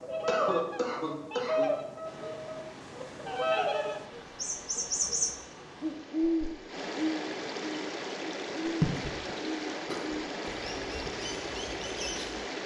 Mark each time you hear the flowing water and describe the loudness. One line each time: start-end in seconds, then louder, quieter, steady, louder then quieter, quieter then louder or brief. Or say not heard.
2.0-12.6 louder.